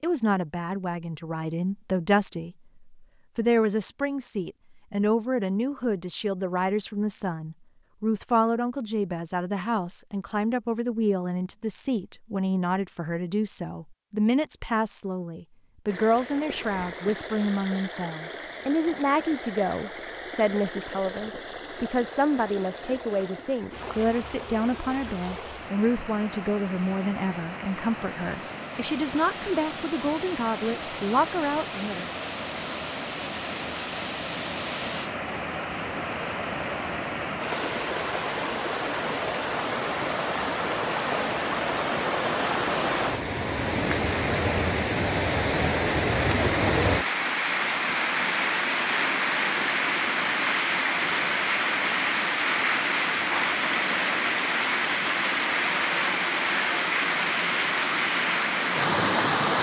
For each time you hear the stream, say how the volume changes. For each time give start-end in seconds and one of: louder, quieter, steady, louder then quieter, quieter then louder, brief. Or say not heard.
15.8-59.5 louder.